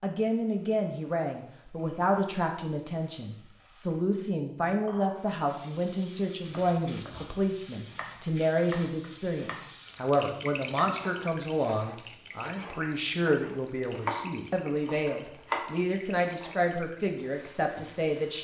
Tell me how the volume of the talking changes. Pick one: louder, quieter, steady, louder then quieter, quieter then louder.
steady.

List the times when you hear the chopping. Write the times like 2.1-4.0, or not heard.
6.4-9.7, 10.7-16.6.